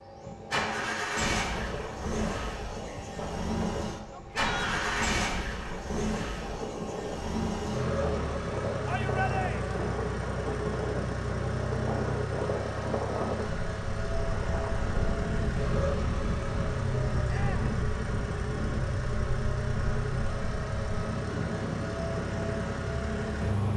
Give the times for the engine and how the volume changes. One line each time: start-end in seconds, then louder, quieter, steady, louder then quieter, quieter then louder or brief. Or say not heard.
0.0-23.7 steady.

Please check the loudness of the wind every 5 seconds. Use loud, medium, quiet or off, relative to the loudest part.
medium, loud, loud, loud, loud.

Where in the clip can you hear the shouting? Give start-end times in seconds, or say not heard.
4.1-5.1, 8.8-9.8, 17.2-17.7.